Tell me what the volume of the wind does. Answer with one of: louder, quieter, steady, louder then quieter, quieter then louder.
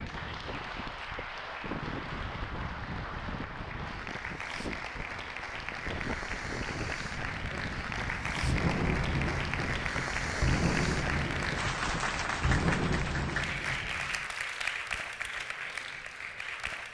steady.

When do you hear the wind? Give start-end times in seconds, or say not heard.
0.0-12.7.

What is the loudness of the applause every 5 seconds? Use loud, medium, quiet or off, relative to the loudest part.
medium, loud, loud, medium.